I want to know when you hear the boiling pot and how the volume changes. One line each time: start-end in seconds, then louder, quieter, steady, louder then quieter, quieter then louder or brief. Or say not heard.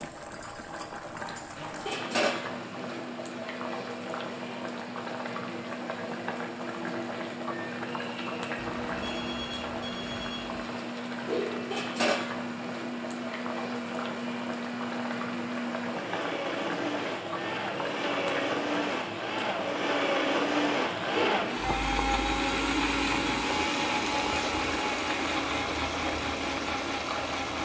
0.0-27.5 steady.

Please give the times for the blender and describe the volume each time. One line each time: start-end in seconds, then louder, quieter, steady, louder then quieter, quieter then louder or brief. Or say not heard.
0.0-27.5 louder.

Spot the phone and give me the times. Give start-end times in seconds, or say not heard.
8.6-10.6.